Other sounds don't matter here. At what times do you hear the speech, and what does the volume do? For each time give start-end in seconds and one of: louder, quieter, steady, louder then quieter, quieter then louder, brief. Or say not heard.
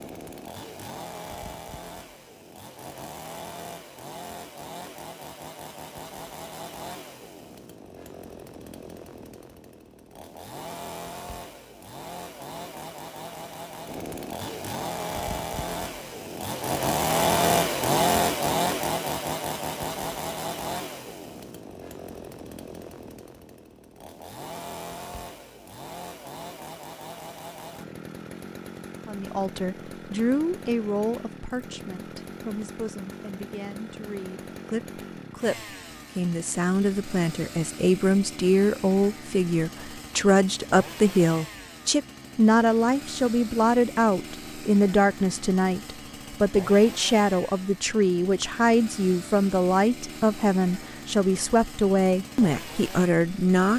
29.1-53.7 louder.